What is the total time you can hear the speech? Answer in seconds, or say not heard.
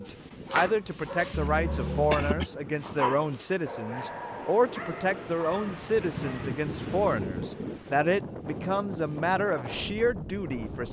11 s.